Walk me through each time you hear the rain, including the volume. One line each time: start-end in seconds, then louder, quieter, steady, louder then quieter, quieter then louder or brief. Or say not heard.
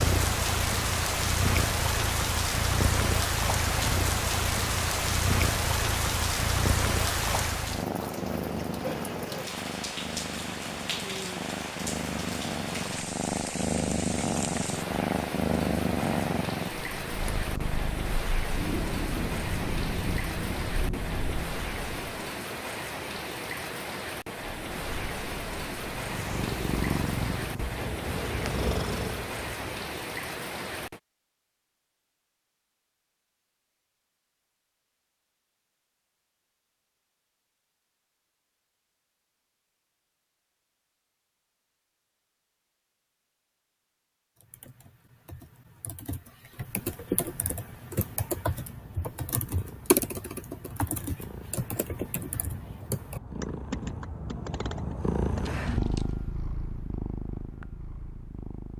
0.0-31.0 quieter.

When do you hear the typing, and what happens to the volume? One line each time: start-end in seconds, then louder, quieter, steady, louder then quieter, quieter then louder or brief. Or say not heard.
44.4-56.2 louder then quieter.